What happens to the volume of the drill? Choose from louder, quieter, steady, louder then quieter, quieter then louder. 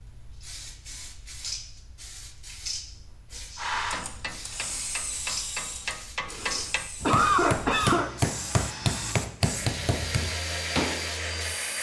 quieter then louder.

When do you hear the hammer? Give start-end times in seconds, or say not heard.
3.3-11.1.